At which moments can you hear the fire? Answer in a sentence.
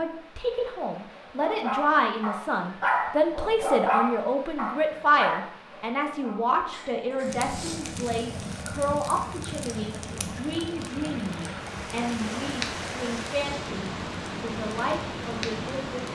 The fire can be heard from 7.2 to 16.0 s.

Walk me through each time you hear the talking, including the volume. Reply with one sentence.
You can hear the talking from 0.0 to 16.0 s, getting quieter.